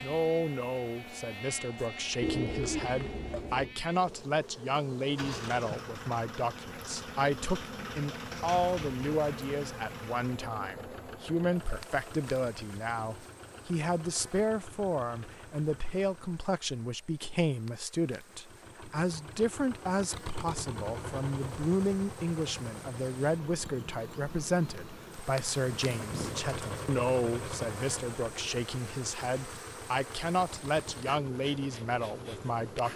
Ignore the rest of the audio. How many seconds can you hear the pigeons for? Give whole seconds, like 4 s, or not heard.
3 s.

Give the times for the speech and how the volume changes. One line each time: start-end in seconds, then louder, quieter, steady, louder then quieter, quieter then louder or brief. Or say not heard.
0.0-32.9 steady.